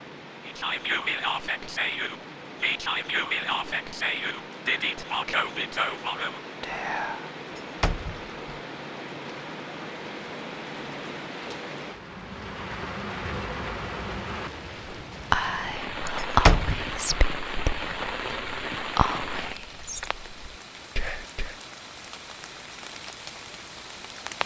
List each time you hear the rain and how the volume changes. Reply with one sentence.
The rain can be heard from 0.0 to 24.4 s, getting louder then quieter.